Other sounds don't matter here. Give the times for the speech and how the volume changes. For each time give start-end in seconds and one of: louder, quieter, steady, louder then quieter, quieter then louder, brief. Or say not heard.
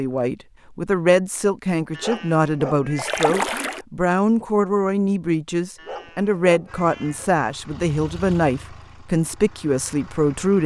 0.0-10.6 steady.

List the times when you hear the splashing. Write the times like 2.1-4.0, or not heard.
3.0-3.9.